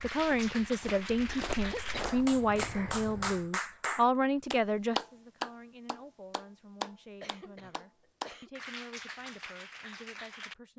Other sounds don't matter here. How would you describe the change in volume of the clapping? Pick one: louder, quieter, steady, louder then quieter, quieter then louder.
louder then quieter.